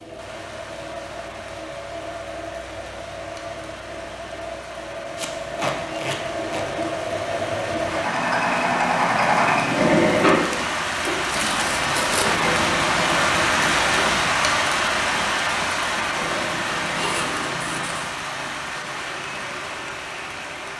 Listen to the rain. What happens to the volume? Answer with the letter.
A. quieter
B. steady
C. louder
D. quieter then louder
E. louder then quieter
E.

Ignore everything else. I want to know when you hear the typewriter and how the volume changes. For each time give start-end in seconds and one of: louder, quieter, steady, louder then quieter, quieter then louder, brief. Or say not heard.
not heard.